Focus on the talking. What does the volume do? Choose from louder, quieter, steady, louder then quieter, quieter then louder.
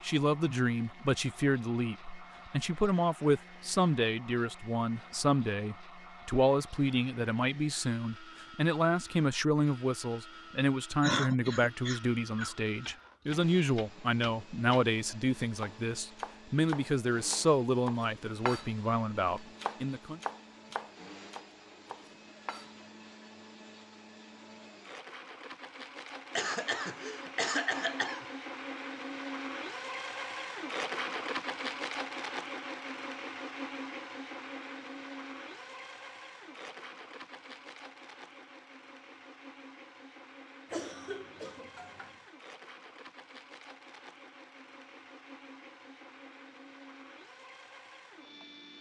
steady.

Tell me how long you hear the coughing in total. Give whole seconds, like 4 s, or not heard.
5 s.